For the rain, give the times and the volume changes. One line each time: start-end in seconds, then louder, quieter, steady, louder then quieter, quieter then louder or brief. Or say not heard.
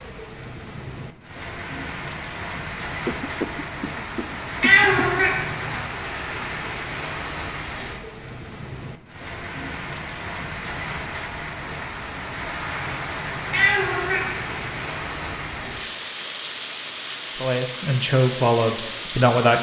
0.0-19.5 steady.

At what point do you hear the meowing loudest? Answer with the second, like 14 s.
5 s.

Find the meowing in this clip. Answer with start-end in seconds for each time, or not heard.
4.6-5.8, 13.5-14.7.